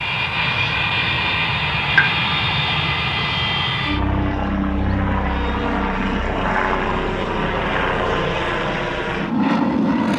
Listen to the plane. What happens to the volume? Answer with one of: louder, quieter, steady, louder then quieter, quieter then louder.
steady.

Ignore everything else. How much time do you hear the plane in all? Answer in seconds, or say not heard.
10 s.